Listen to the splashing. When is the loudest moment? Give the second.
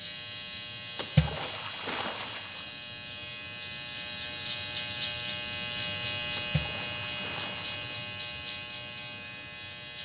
1 s.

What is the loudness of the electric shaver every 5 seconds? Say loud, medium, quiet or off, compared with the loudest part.
medium, loud.